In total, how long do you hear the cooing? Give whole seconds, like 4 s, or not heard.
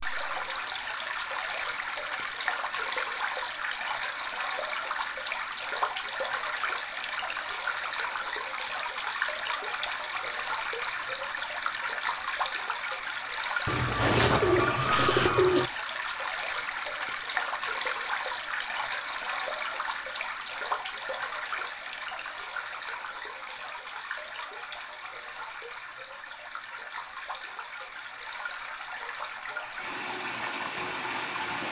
2 s.